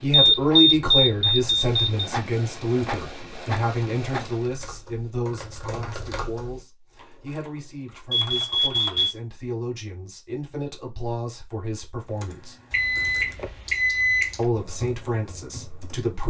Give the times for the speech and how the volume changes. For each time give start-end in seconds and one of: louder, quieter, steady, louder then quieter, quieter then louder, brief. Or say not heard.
0.0-12.6 quieter
14.3-16.2 brief.